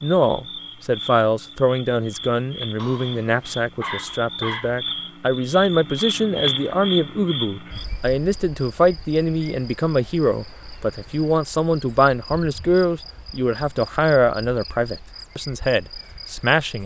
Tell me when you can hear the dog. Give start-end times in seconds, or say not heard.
2.8-4.7.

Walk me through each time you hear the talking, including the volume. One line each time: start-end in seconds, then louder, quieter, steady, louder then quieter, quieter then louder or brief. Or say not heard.
0.0-16.8 steady.